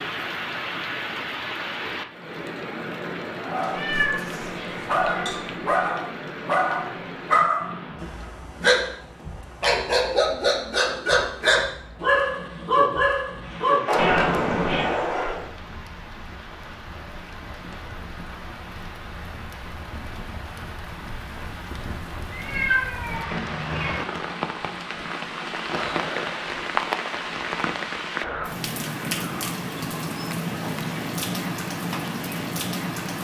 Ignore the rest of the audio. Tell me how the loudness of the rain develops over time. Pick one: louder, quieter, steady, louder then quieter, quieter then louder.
quieter then louder.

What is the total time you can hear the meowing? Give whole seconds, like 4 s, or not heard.
5 s.